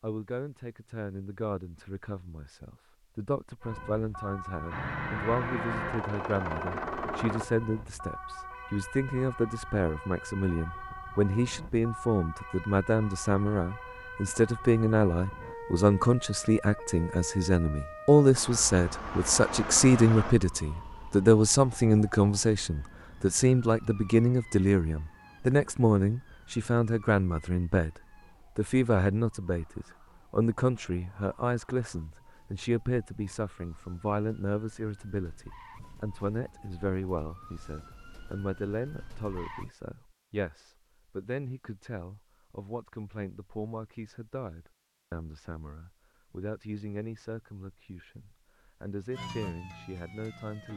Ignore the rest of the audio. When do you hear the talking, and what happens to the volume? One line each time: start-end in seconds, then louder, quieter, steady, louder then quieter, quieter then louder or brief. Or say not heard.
0.0-50.7 louder then quieter.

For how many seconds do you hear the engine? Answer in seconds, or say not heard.
5 s.